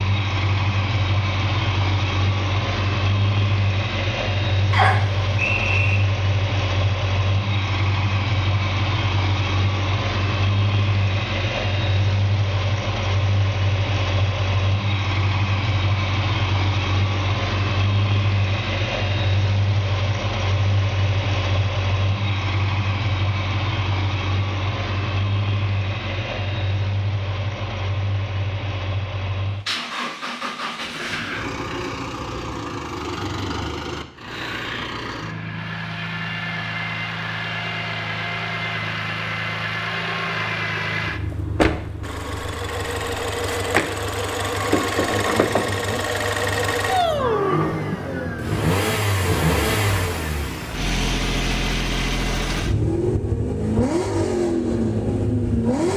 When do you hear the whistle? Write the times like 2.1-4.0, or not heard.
4.7-6.0.